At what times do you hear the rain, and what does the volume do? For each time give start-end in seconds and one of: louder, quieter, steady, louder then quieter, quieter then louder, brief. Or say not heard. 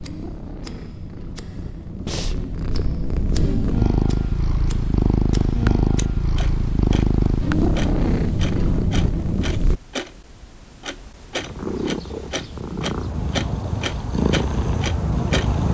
not heard.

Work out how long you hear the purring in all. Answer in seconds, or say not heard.
14 s.